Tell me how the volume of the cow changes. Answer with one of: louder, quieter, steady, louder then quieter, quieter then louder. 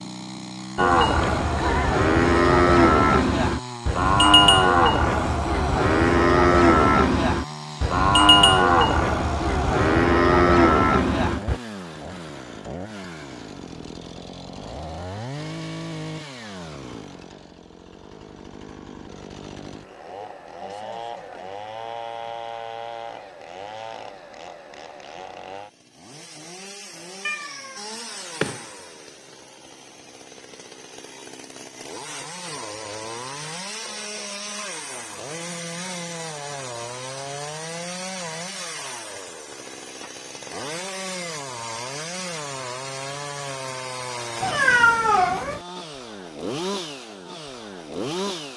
steady.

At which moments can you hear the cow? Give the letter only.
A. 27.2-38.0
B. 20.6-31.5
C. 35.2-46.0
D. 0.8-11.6
D.